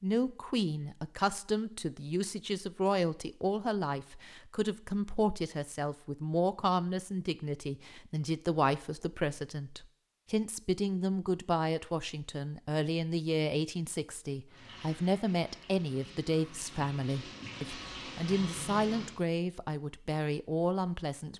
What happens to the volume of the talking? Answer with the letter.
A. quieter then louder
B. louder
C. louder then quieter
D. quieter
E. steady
E.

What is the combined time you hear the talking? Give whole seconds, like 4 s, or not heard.
21 s.